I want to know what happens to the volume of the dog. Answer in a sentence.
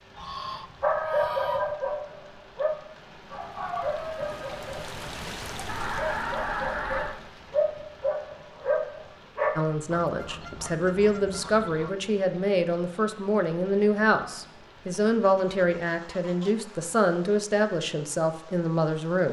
The loudness of the dog goes down, then up.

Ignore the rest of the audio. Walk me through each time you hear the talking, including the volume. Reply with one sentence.
The talking can be heard from 9.6 to 19.2 s, at a steady volume.